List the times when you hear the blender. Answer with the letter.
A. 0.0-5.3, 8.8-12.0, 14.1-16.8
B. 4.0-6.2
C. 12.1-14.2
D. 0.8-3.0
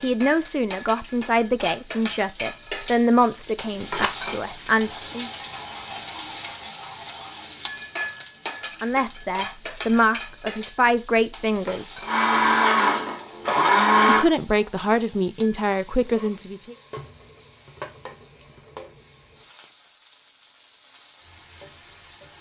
C.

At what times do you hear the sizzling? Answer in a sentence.
You can hear the sizzling from 0.0 to 22.3 s.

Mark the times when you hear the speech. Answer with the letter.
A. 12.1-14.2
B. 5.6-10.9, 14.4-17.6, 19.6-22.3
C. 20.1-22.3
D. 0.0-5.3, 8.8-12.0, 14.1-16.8
D.